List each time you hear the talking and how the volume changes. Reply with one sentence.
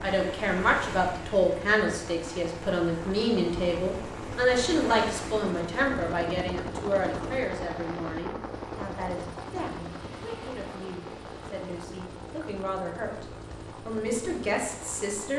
The talking can be heard from 0.0 to 13.2 s, getting quieter; and briefly from 13.8 to 15.3 s.